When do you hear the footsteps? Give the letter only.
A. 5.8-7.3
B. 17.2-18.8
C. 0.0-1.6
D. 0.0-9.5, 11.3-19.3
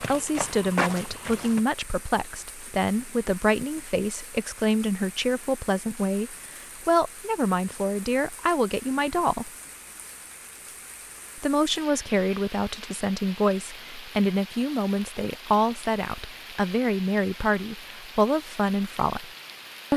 C.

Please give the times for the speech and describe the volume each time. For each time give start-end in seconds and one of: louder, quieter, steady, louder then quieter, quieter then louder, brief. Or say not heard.
0.0-9.5 steady
11.3-19.3 steady.